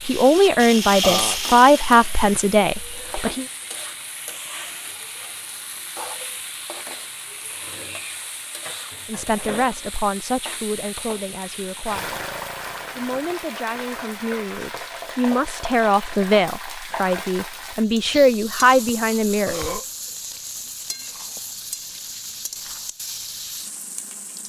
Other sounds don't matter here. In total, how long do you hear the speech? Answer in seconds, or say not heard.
13 s.